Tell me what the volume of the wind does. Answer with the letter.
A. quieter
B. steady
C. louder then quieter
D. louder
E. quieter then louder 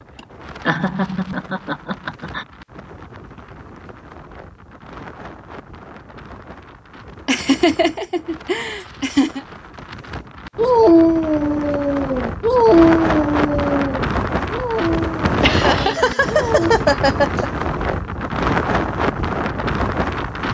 D.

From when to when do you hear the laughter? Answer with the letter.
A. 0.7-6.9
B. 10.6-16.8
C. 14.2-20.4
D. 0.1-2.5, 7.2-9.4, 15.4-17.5
D.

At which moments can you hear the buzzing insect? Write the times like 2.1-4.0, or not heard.
not heard.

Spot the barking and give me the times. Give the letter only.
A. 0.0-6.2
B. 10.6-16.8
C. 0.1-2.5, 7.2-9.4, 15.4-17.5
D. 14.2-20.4
B.